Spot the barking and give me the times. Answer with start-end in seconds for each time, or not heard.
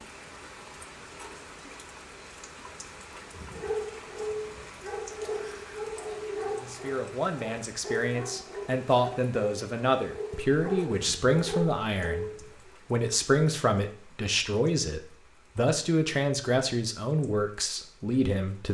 3.3-12.7.